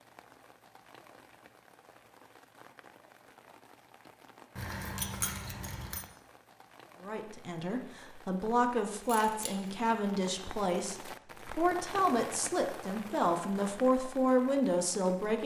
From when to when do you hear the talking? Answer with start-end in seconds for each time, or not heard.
7.0-15.4.